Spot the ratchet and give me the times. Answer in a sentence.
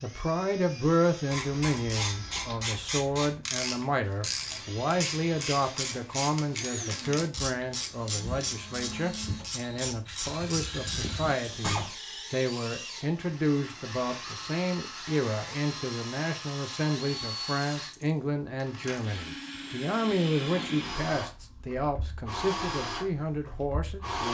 The ratchet can be heard from 1.3 to 11.9 s.